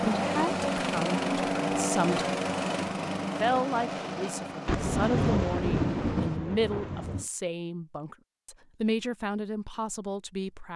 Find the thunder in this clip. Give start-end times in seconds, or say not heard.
4.7-7.2.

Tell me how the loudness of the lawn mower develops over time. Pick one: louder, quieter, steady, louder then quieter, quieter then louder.
quieter.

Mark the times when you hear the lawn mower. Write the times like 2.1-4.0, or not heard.
0.0-6.4.